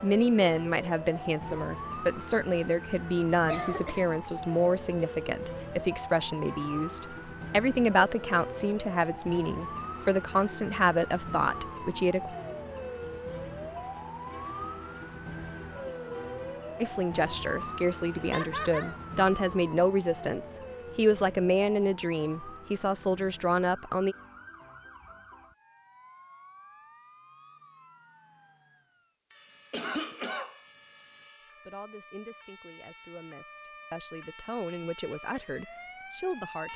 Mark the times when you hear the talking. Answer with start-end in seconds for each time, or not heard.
0.0-12.3, 16.8-24.1, 31.6-36.7.